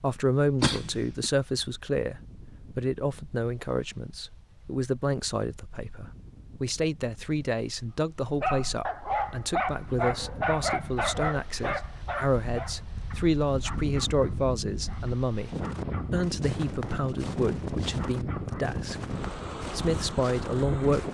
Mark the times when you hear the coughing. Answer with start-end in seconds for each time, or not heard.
0.6-1.3.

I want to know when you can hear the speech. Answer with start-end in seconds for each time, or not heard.
0.0-15.5, 16.1-18.9, 19.8-21.1.